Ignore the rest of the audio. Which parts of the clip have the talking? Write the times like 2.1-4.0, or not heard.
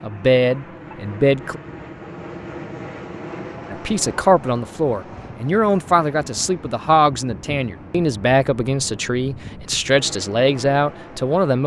0.0-1.6, 3.7-11.6.